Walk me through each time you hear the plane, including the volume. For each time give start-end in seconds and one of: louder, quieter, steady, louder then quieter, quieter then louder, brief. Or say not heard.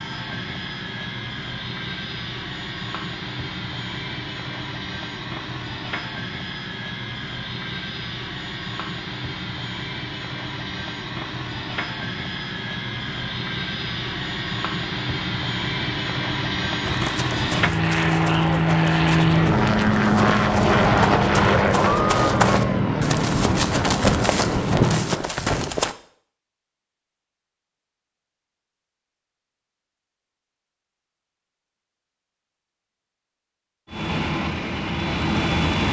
0.0-25.2 louder
33.9-35.8 brief.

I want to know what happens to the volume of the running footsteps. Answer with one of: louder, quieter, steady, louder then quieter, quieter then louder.
louder.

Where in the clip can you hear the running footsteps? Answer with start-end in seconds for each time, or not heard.
16.8-25.9.